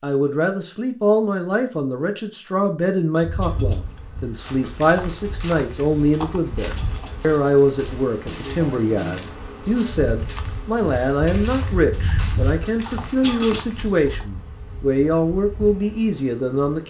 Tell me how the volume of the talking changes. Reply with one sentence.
The loudness of the talking stays about the same.